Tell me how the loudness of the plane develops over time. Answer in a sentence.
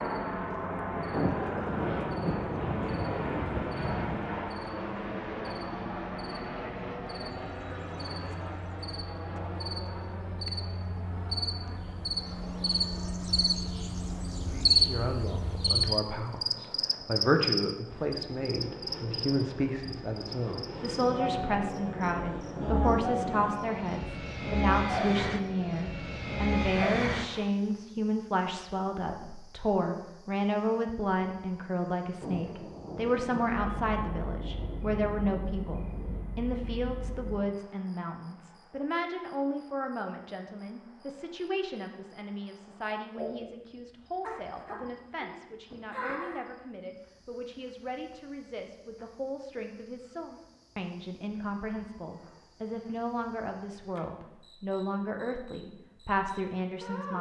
The loudness of the plane goes down, then up.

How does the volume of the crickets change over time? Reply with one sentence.
The volume of the crickets goes down.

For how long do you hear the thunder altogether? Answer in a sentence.
You can hear the thunder for 7 seconds altogether.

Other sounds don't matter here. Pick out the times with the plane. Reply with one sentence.
The plane can be heard from 0.0 to 27.5 s.